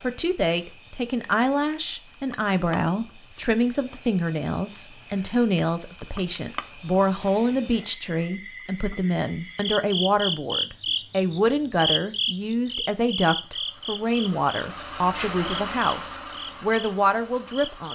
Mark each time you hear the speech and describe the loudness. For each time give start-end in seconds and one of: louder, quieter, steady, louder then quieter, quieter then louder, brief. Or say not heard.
0.0-17.8 steady.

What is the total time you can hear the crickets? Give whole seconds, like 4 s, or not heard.
18 s.